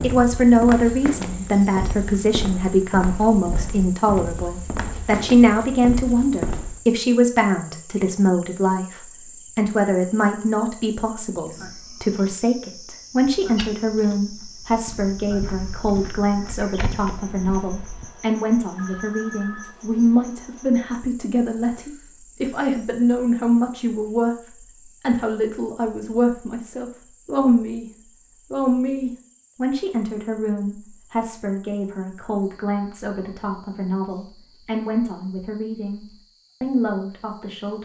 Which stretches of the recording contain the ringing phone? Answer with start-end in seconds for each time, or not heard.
18.8-19.8.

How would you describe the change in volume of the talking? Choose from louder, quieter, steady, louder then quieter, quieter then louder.
quieter.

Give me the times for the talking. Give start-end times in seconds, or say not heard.
0.0-27.9, 28.5-37.7.